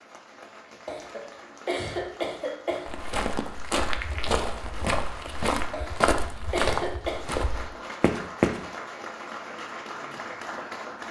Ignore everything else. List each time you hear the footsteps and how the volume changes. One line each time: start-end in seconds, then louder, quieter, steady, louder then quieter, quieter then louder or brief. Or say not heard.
2.9-8.6 steady.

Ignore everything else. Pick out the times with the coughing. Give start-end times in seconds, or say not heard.
0.8-2.9, 5.7-7.2.